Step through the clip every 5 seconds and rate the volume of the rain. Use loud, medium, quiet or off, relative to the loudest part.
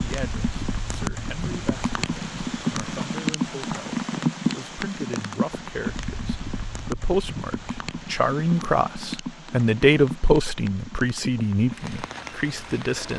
loud, medium, medium.